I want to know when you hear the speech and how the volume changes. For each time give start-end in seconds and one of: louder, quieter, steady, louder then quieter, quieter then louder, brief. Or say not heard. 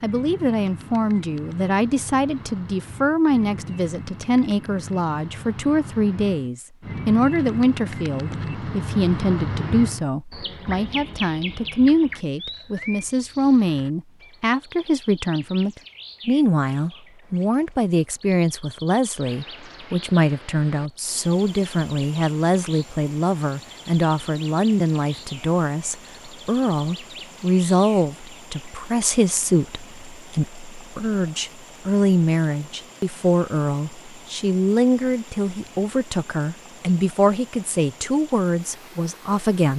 0.0-39.7 steady.